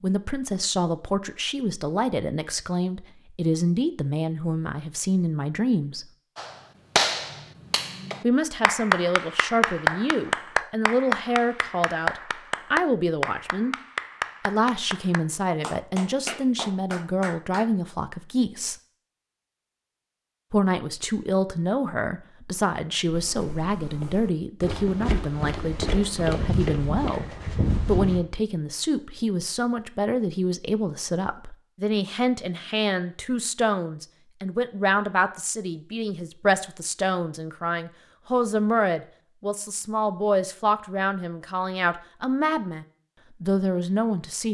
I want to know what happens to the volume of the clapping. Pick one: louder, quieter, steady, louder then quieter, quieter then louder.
quieter.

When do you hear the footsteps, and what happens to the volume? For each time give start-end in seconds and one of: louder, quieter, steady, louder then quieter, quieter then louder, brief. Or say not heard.
23.1-28.2 louder.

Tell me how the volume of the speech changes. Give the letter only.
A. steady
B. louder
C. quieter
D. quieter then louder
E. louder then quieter
A.